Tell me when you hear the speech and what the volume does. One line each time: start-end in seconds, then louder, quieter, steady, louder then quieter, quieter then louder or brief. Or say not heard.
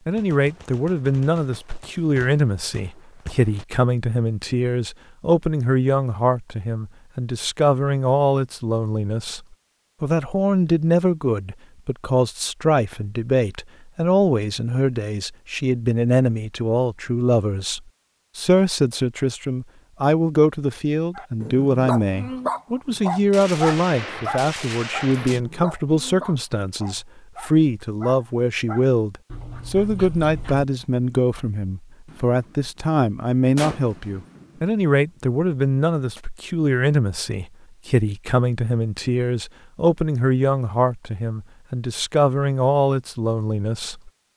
0.1-44.1 steady.